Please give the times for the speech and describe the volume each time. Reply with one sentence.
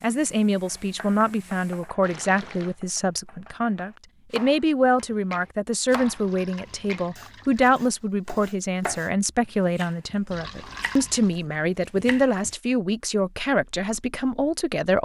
You can hear the speech from 0.0 to 14.9 s, at a steady volume.